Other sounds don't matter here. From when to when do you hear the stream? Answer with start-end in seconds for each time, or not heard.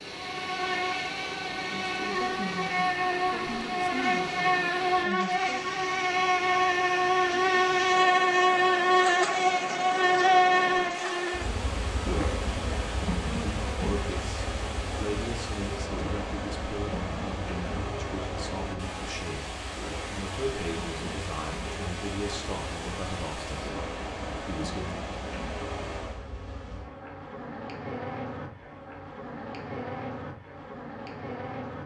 0.0-26.2.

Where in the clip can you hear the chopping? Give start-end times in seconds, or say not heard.
not heard.